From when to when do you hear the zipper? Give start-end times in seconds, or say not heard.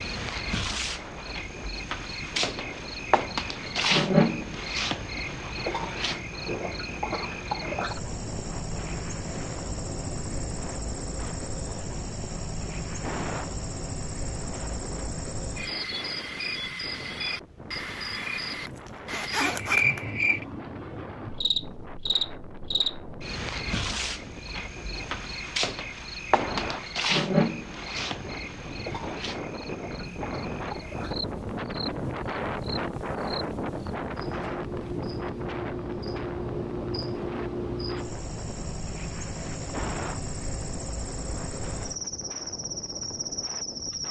18.6-20.1.